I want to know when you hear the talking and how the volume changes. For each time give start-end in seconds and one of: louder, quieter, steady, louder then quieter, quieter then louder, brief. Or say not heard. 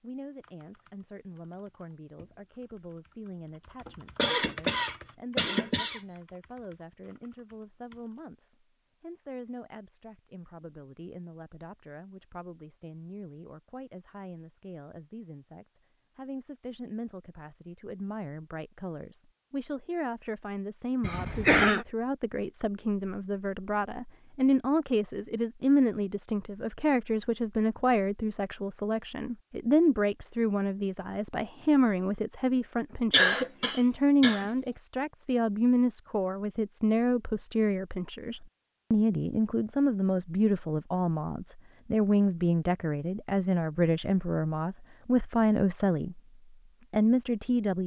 0.0-46.2 louder
46.9-47.8 brief.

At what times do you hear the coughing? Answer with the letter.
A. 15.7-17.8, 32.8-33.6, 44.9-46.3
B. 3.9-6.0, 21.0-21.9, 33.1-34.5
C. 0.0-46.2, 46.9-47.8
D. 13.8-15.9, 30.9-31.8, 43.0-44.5
B.